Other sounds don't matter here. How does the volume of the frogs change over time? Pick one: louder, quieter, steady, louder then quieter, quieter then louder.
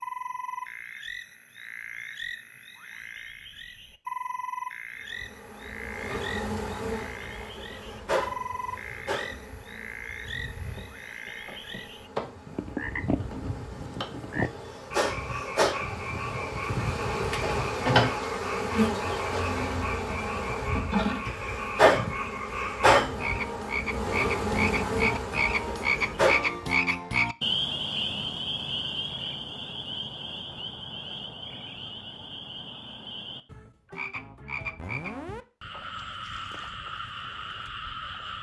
louder then quieter.